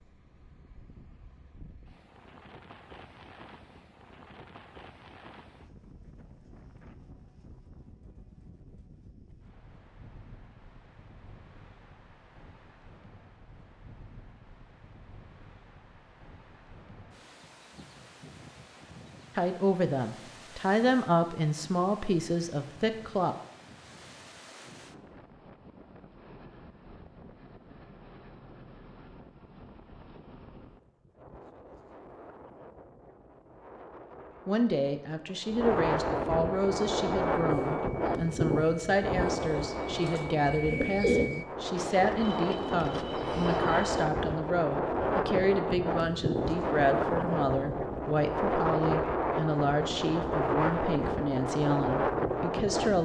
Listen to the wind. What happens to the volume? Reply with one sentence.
The volume of the wind goes up.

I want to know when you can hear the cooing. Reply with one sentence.
You can hear the cooing from 36.7 to 44.0 s.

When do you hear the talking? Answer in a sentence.
You can hear the talking from 19.4 to 23.4 s and from 34.5 to 53.0 s.